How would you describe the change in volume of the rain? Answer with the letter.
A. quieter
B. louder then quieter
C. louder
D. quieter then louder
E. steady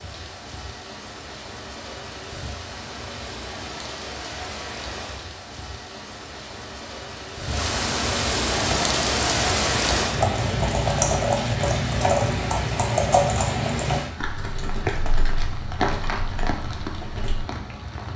B.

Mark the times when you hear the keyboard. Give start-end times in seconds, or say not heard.
8.5-17.4.